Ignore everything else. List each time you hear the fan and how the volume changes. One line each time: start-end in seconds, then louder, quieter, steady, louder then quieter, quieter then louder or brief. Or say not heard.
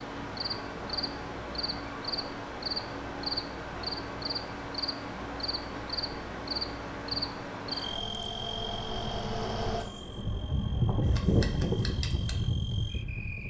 0.0-13.4 louder.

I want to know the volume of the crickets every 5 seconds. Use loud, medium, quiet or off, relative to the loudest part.
loud, loud, medium.